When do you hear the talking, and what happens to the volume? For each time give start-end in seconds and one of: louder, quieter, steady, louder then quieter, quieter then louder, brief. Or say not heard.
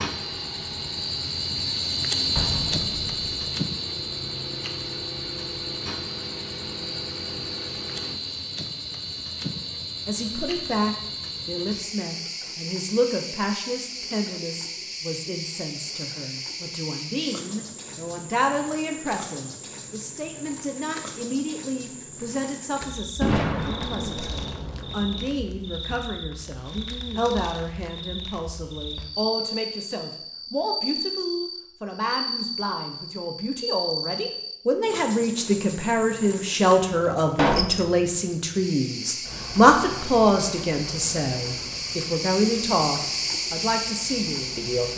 10.1-44.9 louder.